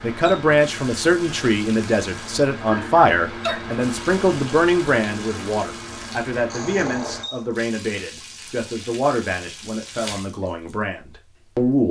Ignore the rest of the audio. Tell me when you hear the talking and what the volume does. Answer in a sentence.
You can hear the talking from 0.0 to 11.8 s, getting quieter.